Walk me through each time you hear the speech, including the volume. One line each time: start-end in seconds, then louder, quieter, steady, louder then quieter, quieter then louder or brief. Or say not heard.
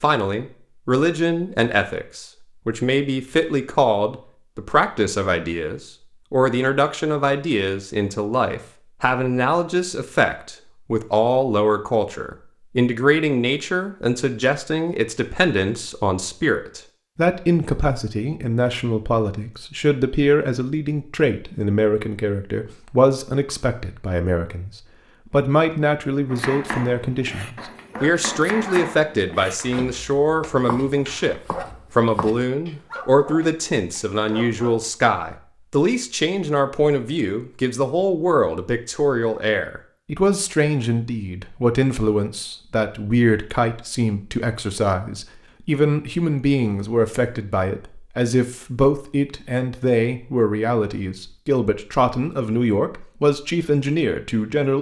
0.0-54.7 steady.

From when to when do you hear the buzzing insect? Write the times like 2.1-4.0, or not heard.
not heard.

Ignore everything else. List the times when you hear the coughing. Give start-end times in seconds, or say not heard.
not heard.